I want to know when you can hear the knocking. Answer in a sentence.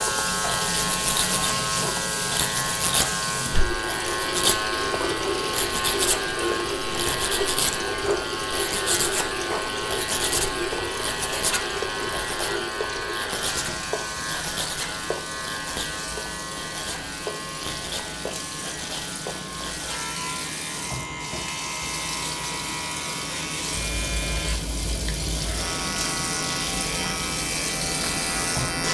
You can't hear the knocking here.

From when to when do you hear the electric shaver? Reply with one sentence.
The electric shaver can be heard from 0.0 to 28.8 s.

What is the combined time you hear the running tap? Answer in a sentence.
You can hear the running tap for 29 seconds altogether.